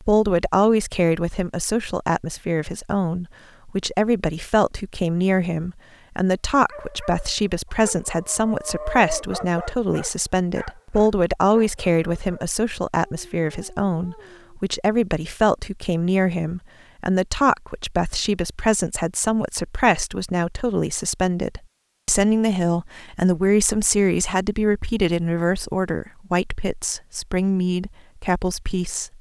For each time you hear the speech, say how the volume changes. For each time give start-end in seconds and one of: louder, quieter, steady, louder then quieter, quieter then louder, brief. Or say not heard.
0.0-29.1 steady.